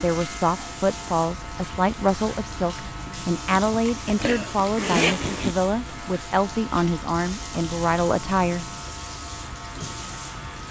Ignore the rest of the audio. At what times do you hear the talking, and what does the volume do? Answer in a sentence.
You can hear the talking from 0.0 to 8.7 s, at a steady volume.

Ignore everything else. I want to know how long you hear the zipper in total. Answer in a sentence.
The zipper can be heard for 2 seconds in total.